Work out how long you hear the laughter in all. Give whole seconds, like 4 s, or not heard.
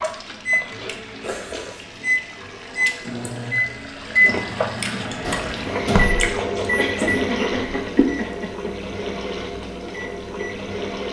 2 s.